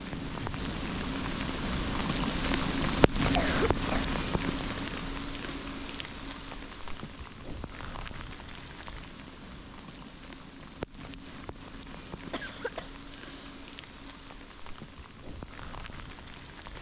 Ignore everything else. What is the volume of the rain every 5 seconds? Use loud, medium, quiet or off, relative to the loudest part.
loud, medium, quiet, quiet.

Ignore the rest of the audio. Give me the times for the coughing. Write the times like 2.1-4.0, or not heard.
3.3-4.2, 12.3-13.6.